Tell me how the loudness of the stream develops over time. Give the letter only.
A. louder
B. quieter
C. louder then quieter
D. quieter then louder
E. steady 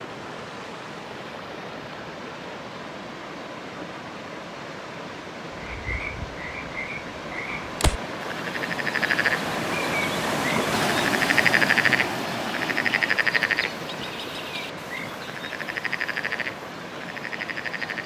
C.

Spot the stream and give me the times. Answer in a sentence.
The stream can be heard from 0.0 to 18.0 s.